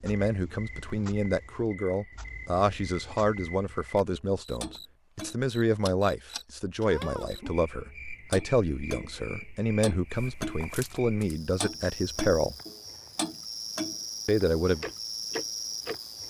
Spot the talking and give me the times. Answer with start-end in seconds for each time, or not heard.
0.0-12.6, 14.2-14.8.